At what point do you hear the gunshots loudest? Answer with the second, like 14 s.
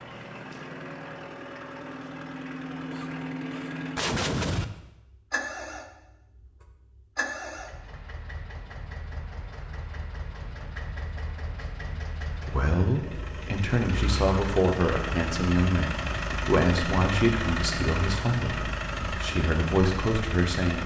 4 s.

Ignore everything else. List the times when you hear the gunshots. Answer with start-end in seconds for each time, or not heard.
2.7-4.7.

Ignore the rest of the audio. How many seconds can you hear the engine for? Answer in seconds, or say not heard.
21 s.